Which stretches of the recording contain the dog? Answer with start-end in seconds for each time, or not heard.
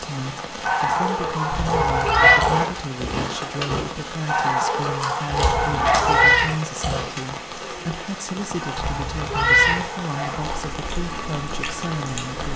0.7-2.6, 4.2-6.3, 8.6-10.6.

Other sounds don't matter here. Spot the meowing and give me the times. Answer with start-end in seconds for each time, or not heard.
1.5-2.4, 5.5-6.5, 8.8-9.8.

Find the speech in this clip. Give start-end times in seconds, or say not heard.
0.0-12.5.